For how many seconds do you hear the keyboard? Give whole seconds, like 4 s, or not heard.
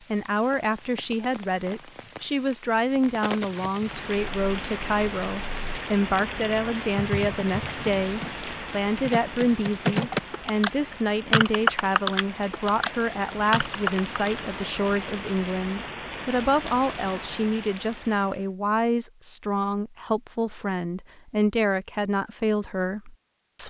10 s.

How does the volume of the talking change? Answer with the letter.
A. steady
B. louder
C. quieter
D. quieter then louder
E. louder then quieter
A.